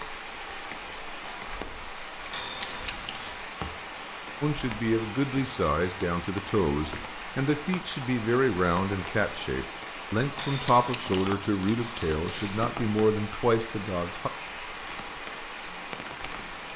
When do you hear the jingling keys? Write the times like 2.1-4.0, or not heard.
2.3-3.4, 10.3-12.7.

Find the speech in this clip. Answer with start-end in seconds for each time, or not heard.
4.4-14.3.